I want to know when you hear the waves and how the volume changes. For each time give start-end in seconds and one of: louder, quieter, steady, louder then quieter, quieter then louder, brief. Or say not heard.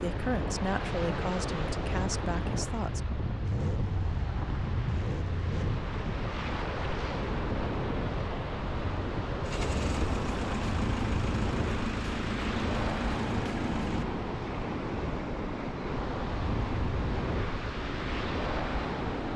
0.0-19.3 steady.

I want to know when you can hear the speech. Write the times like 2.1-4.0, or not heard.
0.0-3.0.